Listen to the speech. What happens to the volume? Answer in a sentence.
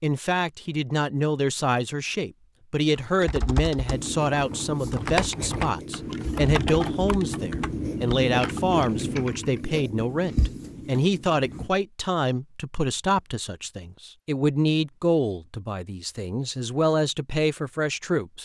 The loudness of the speech stays about the same.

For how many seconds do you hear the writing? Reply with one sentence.
The writing can be heard for 8 seconds in total.